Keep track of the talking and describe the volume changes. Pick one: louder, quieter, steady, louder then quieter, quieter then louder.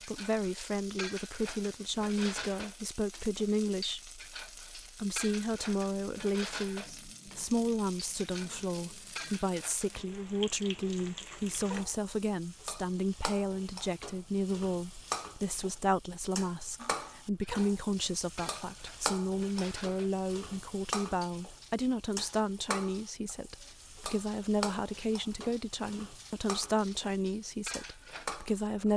steady.